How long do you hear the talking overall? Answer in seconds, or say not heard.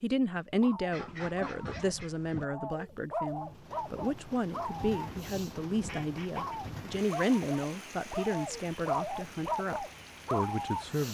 11 s.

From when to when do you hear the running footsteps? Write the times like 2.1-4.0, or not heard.
not heard.